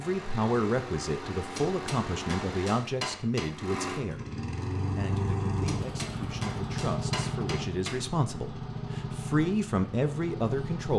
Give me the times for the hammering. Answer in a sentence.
The hammering can be heard from 1.6 to 3.5 s and from 5.7 to 8.1 s.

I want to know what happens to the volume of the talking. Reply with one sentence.
The volume of the talking goes down, then up.